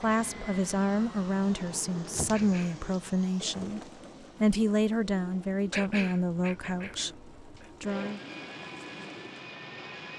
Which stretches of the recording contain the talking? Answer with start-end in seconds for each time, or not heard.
0.0-3.8, 4.4-8.2.